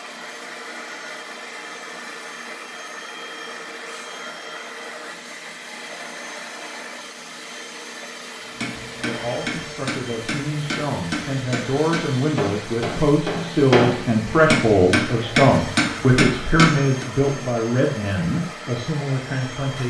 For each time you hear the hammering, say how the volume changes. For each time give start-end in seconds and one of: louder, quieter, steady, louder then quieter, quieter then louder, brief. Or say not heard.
8.6-17.1 louder.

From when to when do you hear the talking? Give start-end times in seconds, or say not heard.
9.0-19.8.